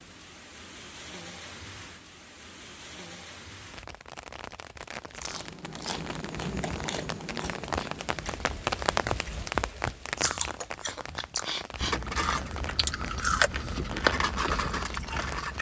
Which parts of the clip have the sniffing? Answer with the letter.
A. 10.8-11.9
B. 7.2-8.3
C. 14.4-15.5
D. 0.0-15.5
A.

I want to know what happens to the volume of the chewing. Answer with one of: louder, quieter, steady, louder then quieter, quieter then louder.
quieter then louder.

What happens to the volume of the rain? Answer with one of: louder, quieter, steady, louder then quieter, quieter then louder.
louder then quieter.